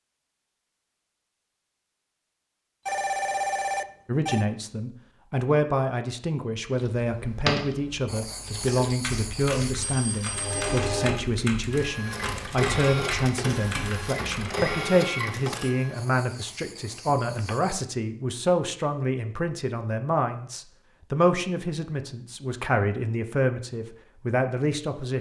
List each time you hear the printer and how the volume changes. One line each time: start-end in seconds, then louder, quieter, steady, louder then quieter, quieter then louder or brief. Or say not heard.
10.3-16.1 steady.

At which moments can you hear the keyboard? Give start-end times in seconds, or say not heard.
6.7-14.6.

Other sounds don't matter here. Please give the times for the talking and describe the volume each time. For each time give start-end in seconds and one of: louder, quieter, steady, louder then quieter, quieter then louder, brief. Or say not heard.
4.0-25.1 steady.